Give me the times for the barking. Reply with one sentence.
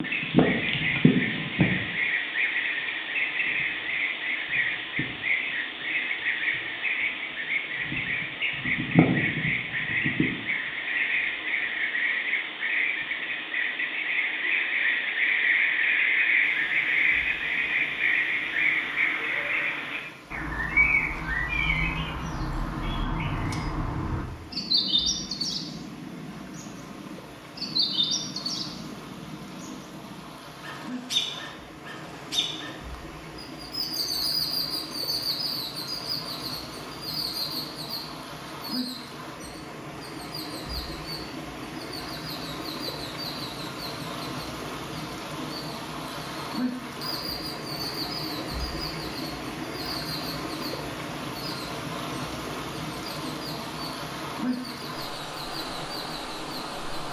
The barking can't be heard in this clip.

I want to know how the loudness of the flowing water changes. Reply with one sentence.
The loudness of the flowing water goes up.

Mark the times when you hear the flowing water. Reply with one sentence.
The flowing water can be heard from 16.4 to 57.0 s.